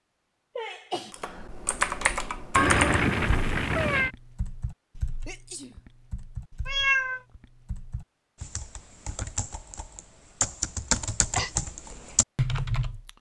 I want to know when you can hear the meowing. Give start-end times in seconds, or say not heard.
2.5-4.1, 6.7-7.2.